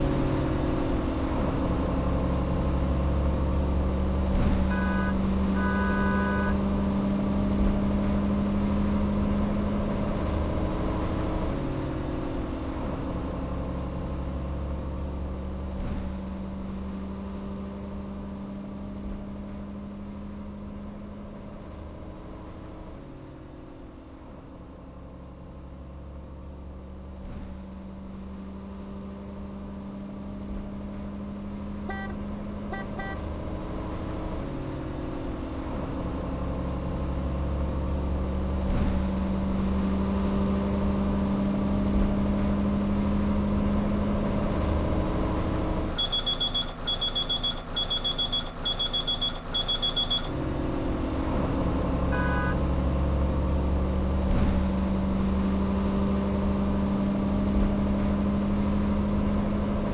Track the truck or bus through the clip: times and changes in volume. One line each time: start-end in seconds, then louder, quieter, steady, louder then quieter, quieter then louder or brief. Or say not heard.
0.0-59.8 quieter then louder.